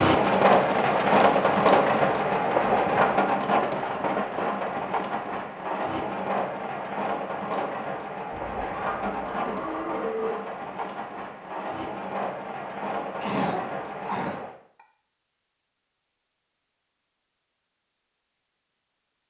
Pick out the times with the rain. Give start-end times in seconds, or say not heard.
0.0-14.6.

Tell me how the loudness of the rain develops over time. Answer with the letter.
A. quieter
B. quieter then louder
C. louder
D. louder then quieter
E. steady
A.